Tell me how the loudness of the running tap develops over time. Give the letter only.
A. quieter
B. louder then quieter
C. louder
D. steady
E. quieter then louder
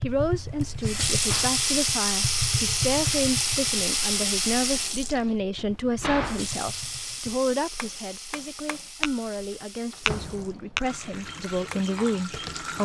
A.